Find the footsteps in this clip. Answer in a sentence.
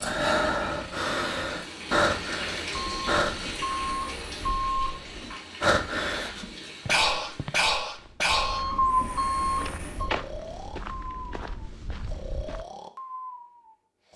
You can hear the footsteps from 6.8 to 12.7 s.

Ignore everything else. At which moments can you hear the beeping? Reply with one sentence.
You can hear the beeping from 2.7 to 5.4 s and from 8.2 to 10.2 s.